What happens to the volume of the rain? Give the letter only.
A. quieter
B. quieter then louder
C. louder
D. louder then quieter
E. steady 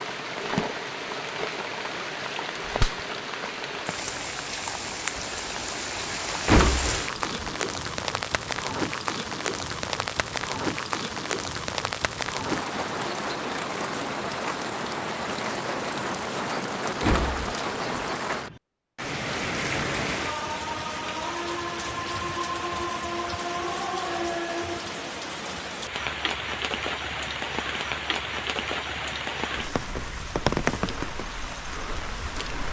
E.